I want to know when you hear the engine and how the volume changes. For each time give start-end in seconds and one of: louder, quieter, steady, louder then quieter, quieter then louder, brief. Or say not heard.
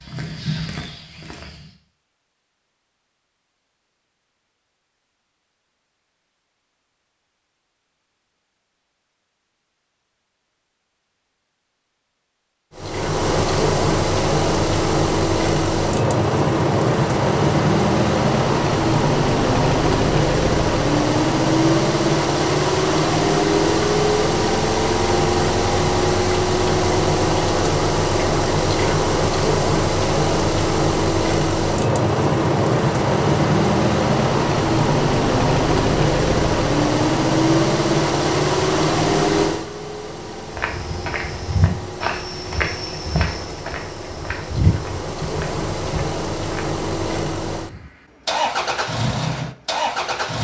12.8-50.3 quieter.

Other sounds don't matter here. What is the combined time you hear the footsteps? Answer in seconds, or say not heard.
8 s.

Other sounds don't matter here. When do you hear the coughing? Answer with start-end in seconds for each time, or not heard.
not heard.